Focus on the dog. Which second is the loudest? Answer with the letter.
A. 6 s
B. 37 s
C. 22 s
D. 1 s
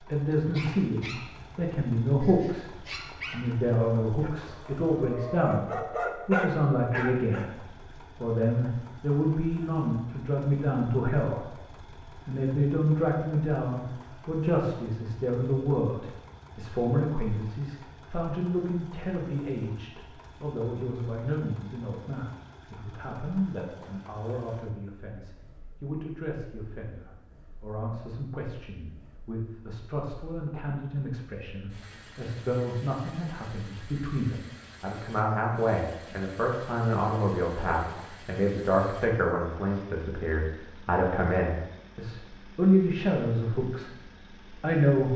A.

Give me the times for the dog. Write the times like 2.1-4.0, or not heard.
0.3-7.5.